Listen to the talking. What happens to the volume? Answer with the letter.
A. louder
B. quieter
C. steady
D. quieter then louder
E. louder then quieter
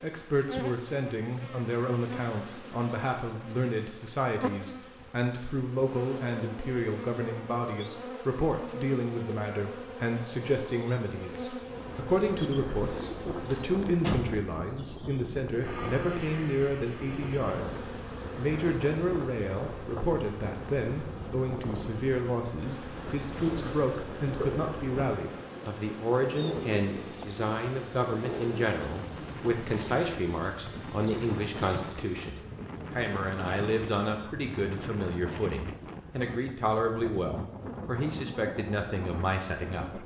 C.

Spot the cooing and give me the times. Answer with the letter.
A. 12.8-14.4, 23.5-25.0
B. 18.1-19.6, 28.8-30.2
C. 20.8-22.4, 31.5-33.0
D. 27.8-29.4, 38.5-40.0
A.